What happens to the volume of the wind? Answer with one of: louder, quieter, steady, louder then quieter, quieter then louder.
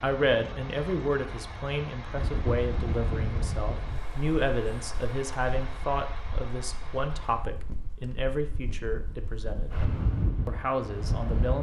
quieter then louder.